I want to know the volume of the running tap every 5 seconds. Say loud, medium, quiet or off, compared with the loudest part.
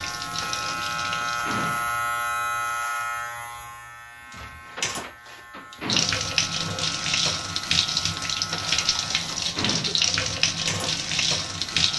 medium, loud, loud.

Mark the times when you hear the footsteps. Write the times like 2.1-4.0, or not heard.
not heard.